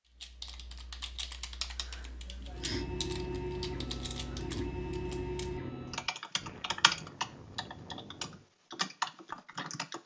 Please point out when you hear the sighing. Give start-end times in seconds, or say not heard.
1.8-2.9, 6.3-8.5.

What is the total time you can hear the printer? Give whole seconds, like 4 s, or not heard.
4 s.